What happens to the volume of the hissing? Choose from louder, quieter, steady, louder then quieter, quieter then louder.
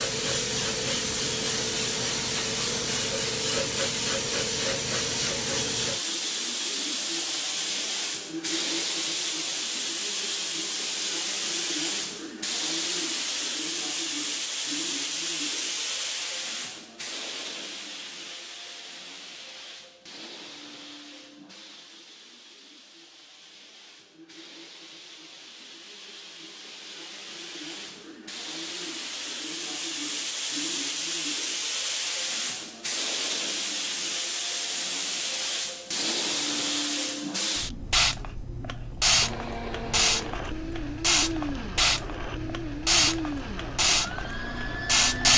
quieter then louder.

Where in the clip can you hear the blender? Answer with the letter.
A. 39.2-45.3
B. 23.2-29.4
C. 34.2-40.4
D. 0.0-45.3
A.